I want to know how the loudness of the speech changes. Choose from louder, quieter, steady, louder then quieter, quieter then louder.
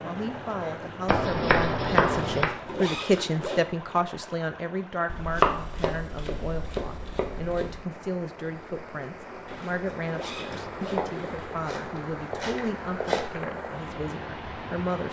quieter.